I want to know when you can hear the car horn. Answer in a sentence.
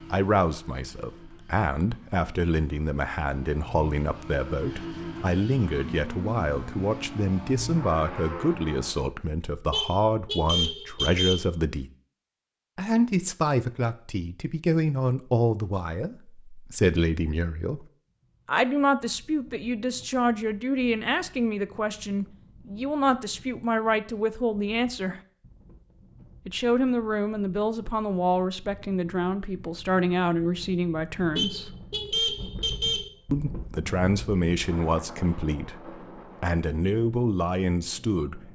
You can hear the car horn from 9.7 to 11.4 s and from 31.4 to 33.1 s.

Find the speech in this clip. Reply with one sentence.
You can hear the speech from 0.1 to 11.9 s, from 12.8 to 17.9 s, from 18.4 to 25.2 s, from 26.4 to 31.7 s and from 33.3 to 38.4 s.